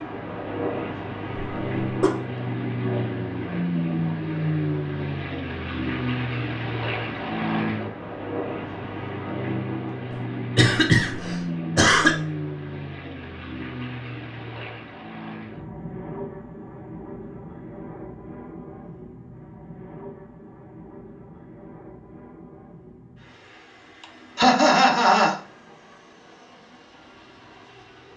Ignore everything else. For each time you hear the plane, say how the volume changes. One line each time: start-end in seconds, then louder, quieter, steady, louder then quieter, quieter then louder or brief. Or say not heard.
0.0-28.1 quieter.